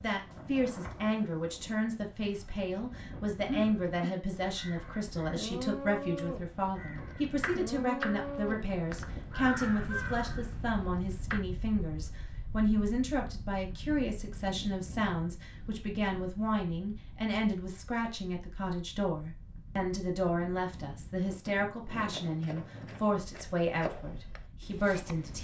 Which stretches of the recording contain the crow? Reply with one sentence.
You can hear the crow from 3.4 to 10.9 s.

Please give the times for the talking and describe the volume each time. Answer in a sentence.
You can hear the talking from 0.0 to 25.3 s, at a steady volume.